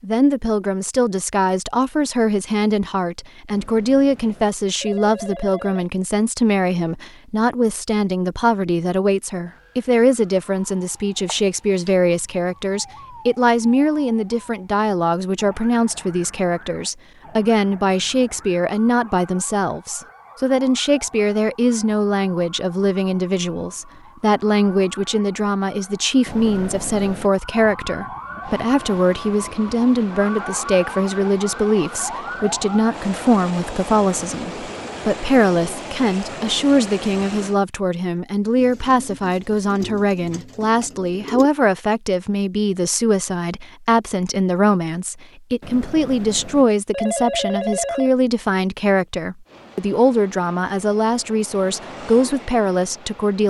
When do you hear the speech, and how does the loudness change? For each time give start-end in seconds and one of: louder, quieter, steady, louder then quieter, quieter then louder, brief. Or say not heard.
0.0-53.4 steady.